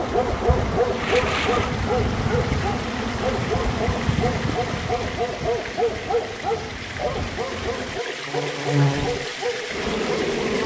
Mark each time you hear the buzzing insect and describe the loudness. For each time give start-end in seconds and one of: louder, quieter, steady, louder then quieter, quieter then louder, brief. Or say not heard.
0.0-10.6 quieter then louder.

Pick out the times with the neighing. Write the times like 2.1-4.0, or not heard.
0.9-1.7.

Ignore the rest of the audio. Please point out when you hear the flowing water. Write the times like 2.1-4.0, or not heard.
0.0-10.6.